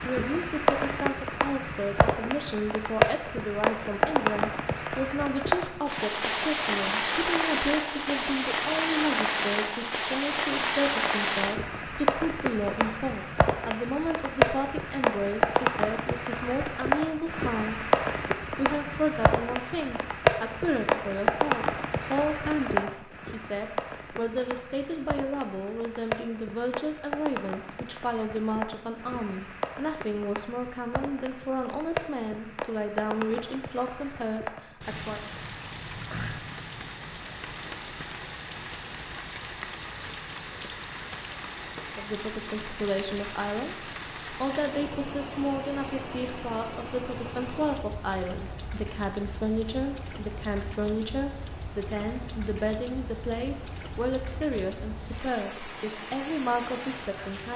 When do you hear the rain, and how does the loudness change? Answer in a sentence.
The rain can be heard from 0.0 to 57.5 s, getting quieter.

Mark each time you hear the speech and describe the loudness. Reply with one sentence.
You can hear the speech from 0.0 to 35.2 s, at a steady volume; and from 42.0 to 57.5 s, at a steady volume.